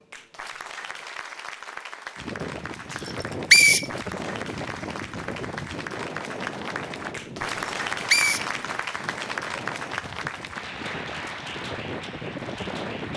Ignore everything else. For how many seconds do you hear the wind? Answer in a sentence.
You can hear the wind for 11 seconds altogether.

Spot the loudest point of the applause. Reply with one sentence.
The volume of the applause peaks at 8 seconds.